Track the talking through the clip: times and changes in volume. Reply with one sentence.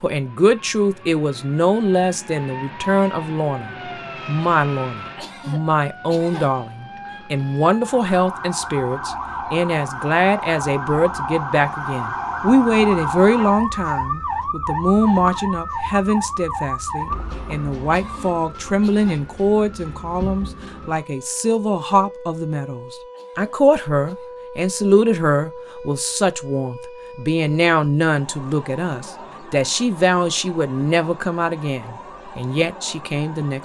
You can hear the talking from 0.0 to 33.6 s, at a steady volume.